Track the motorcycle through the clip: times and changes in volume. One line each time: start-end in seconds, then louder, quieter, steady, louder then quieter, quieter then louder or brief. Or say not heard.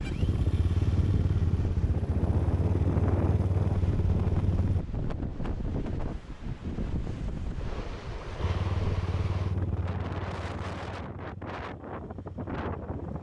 0.0-4.8 steady
8.4-13.1 quieter.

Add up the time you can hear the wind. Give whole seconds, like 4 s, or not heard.
13 s.